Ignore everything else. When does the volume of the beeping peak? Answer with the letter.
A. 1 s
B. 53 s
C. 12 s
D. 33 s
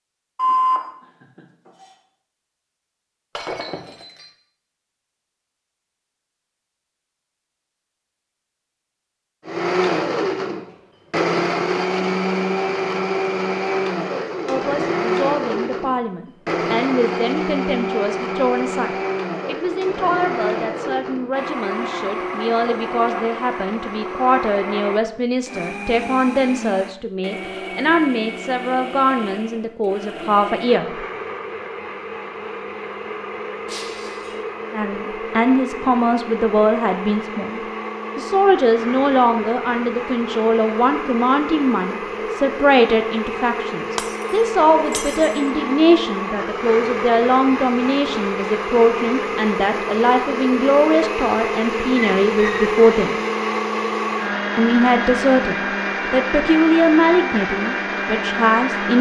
A.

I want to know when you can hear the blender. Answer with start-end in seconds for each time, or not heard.
9.4-58.9.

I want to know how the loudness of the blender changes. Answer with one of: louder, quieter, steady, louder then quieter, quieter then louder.
quieter then louder.